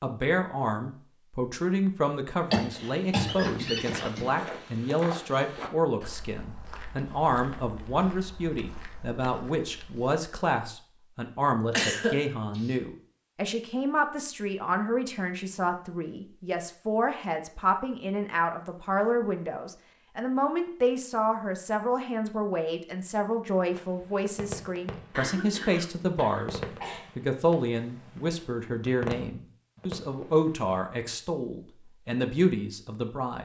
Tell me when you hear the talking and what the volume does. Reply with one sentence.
You can hear the talking from 0.0 to 33.4 s, at a steady volume.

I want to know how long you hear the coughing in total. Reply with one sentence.
You can hear the coughing for 5 seconds altogether.